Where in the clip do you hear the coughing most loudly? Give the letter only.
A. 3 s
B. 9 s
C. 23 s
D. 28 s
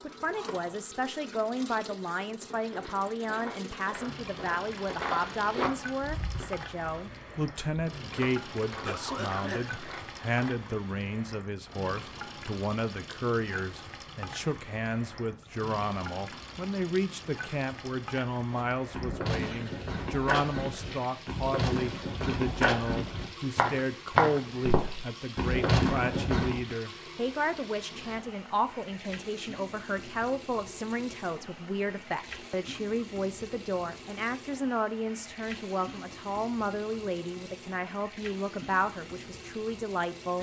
B.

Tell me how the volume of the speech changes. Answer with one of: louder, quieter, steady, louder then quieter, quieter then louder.
steady.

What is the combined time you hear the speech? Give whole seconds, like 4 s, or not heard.
40 s.